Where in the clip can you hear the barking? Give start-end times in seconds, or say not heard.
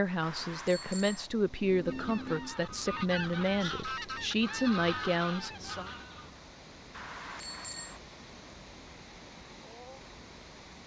not heard.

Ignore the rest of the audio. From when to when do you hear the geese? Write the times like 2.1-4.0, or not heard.
1.5-6.4.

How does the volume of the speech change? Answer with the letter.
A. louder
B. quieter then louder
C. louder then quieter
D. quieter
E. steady
E.